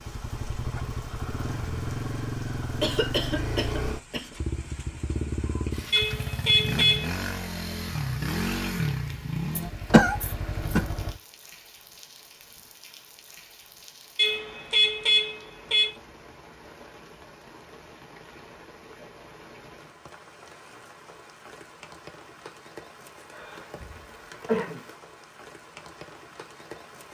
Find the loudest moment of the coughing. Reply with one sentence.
The volume of the coughing peaks at 10 seconds.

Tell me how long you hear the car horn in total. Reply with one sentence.
You can hear the car horn for 3 seconds altogether.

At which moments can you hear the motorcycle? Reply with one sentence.
You can hear the motorcycle from 0.0 to 11.2 s.